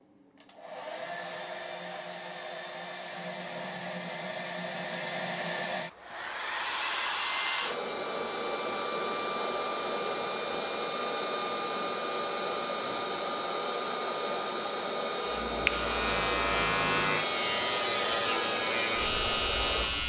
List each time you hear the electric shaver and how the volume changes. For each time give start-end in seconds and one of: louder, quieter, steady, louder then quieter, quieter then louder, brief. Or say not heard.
15.2-20.0 steady.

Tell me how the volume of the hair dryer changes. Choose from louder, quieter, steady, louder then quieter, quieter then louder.
louder.